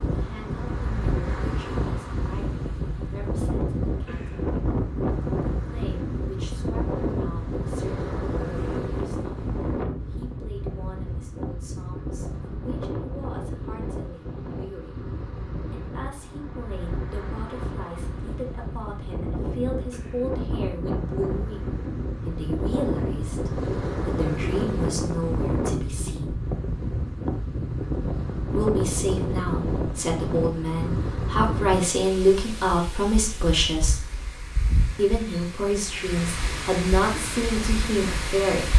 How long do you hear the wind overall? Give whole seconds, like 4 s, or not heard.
39 s.